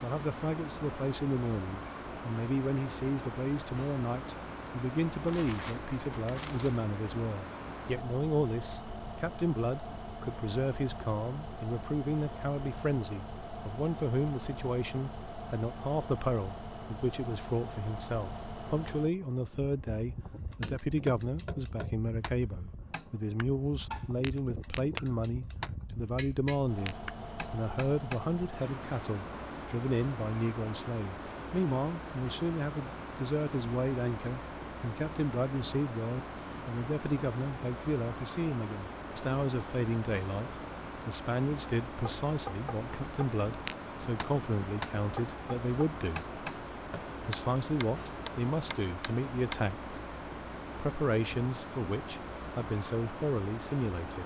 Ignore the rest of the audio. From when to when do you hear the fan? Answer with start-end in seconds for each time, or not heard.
0.0-54.2.